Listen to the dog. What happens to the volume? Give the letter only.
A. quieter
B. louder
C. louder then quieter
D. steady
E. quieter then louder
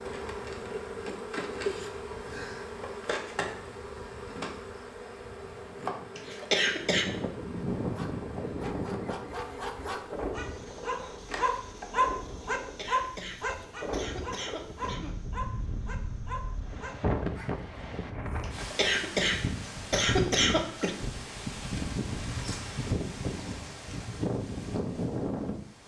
C.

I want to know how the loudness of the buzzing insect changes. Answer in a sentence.
The volume of the buzzing insect goes down.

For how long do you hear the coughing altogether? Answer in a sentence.
You can hear the coughing for 6 seconds altogether.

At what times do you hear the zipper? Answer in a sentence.
The zipper can't be heard in this clip.